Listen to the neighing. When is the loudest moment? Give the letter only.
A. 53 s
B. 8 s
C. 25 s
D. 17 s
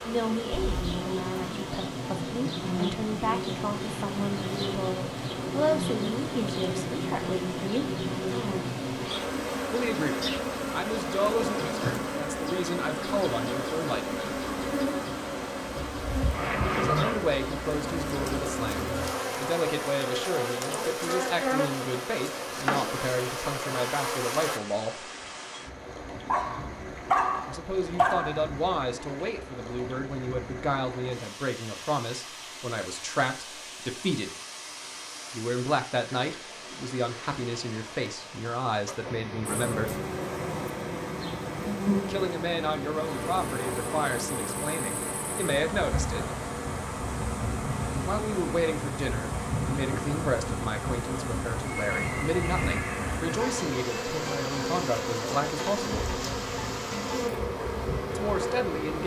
D.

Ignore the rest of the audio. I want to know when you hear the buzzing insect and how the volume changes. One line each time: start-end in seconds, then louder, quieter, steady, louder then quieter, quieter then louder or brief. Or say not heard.
0.0-24.6 steady
39.5-59.0 steady.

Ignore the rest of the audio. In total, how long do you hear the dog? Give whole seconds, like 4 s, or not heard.
2 s.